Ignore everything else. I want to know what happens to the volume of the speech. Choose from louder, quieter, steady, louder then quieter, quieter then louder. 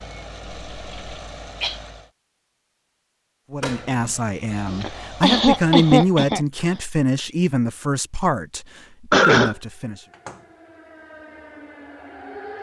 louder then quieter.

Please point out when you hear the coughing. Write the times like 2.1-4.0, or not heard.
0.6-1.8, 4.7-6.4, 9.1-9.6.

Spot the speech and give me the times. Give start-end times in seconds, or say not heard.
3.5-10.0.